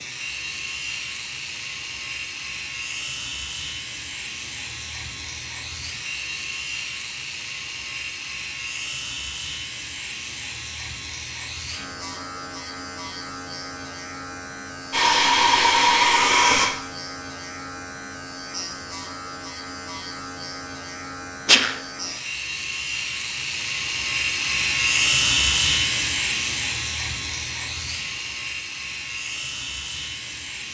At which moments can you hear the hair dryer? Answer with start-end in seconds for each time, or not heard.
14.9-16.7.